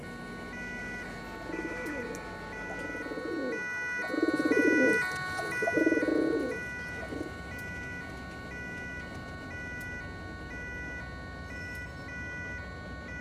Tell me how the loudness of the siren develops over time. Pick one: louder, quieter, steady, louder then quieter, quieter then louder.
louder then quieter.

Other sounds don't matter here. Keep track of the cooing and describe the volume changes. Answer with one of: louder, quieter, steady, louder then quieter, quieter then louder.
louder.